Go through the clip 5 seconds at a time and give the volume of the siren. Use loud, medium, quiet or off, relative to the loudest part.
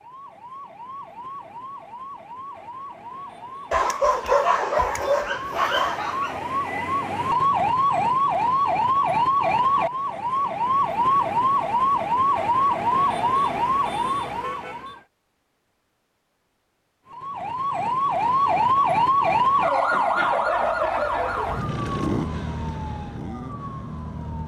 quiet, loud, loud, loud, medium.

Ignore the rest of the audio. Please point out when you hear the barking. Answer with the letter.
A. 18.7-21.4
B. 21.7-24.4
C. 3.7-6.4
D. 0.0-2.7
C.